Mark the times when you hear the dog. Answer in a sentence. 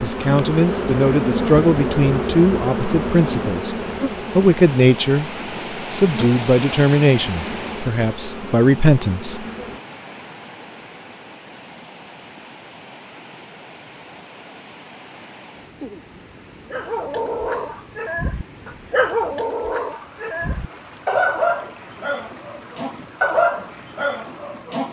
The dog can be heard from 16.7 to 24.8 s.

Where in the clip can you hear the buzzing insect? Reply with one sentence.
You can hear the buzzing insect from 0.0 to 9.8 s.